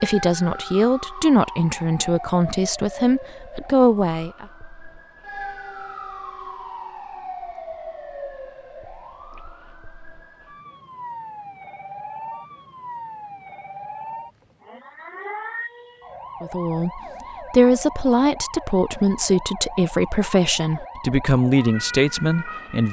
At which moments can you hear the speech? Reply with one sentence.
You can hear the speech from 0.0 to 4.5 s and from 16.4 to 22.8 s.